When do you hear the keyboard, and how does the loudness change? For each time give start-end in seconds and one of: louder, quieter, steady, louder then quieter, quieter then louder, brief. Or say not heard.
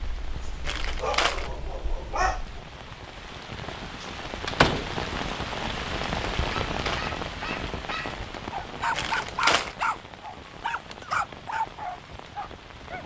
not heard.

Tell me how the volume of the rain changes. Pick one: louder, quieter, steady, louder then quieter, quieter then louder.
louder then quieter.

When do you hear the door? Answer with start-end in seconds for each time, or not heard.
4.0-5.0.